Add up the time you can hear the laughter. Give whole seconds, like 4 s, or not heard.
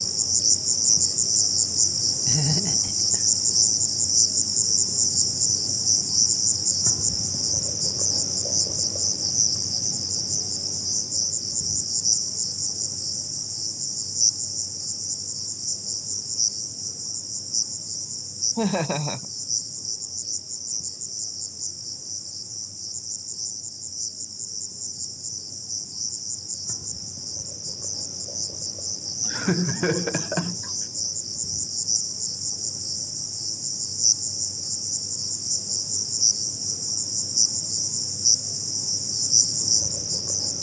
3 s.